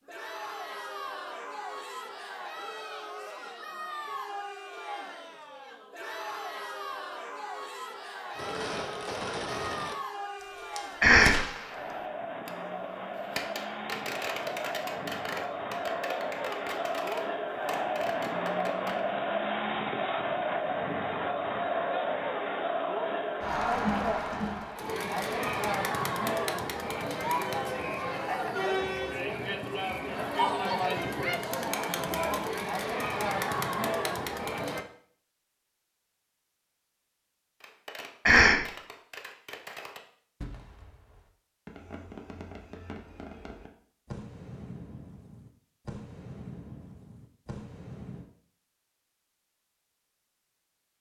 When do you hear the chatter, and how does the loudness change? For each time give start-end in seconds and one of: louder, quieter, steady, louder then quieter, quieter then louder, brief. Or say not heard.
0.1-34.9 louder.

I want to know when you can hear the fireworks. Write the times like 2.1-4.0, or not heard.
8.3-12.5, 13.3-19.0, 37.6-48.3.